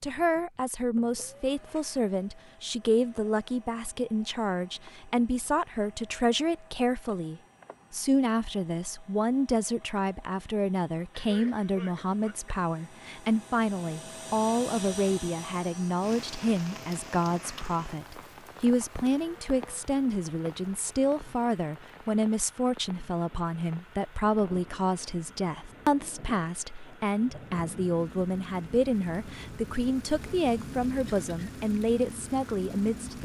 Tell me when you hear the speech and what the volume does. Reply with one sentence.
You can hear the speech from 0.0 to 33.2 s, at a steady volume.